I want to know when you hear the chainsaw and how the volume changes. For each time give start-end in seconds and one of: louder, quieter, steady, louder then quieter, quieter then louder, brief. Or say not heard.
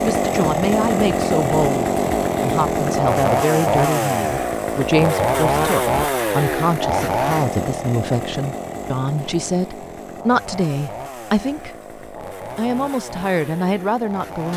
0.0-14.5 quieter.